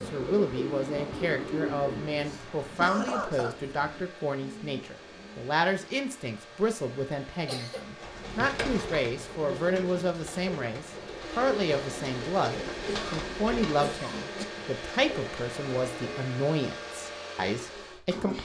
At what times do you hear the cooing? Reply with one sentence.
The cooing can be heard from 0.0 to 5.5 s and from 8.0 to 16.2 s.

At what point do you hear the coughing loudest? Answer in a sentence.
The volume of the coughing peaks at 3 seconds.